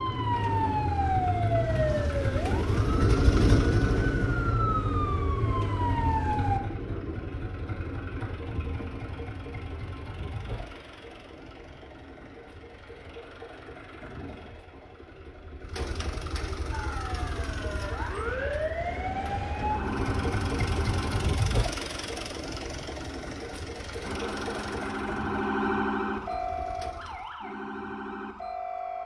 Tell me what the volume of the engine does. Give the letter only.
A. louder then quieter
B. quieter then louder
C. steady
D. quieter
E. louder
B.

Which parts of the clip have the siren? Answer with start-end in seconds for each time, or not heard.
0.0-6.6, 16.7-21.3, 24.0-29.0.